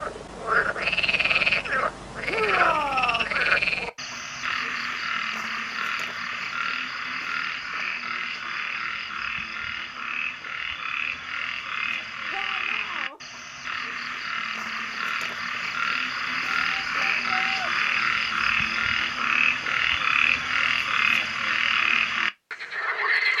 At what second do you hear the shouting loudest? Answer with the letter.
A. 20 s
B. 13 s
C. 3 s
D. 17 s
C.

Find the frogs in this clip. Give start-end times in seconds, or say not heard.
0.0-23.3.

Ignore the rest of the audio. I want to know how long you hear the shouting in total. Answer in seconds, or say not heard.
3 s.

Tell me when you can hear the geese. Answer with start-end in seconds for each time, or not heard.
not heard.